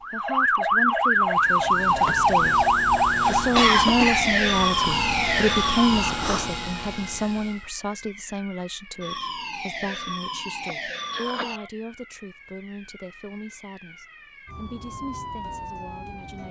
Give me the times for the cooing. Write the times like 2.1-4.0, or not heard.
not heard.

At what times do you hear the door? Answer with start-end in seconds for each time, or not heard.
not heard.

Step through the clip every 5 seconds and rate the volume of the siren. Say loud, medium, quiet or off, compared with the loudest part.
loud, medium, quiet, quiet.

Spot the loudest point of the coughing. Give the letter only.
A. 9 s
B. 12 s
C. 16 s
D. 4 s
D.